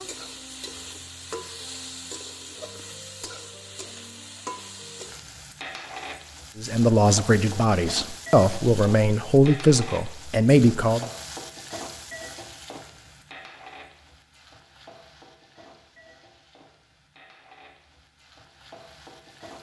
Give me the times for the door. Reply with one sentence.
You can't hear the door here.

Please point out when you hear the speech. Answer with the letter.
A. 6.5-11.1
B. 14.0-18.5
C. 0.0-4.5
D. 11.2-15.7
A.